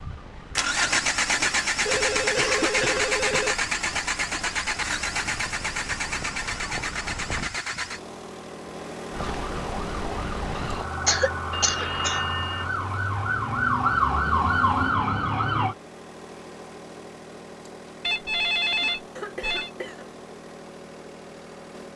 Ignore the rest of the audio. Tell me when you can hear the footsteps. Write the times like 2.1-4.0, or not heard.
not heard.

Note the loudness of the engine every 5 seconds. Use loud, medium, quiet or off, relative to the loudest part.
loud, medium, quiet, quiet, quiet.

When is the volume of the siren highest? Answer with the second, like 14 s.
14 s.